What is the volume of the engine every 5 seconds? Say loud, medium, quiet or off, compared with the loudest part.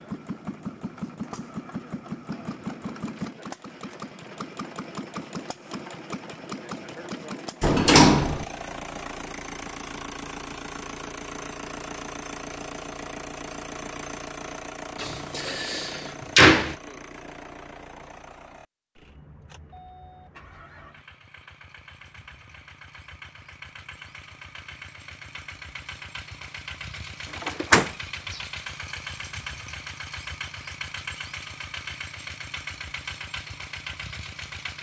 loud, loud, loud, medium, medium, loud, loud.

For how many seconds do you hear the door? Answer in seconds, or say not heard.
3 s.